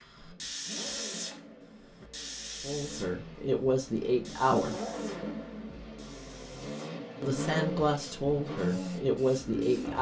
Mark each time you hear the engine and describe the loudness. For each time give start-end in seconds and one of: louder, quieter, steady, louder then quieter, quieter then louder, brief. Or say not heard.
0.0-9.9 louder.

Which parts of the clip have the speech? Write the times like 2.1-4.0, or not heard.
2.6-4.8, 7.2-9.9.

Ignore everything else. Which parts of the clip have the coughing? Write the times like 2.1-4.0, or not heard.
not heard.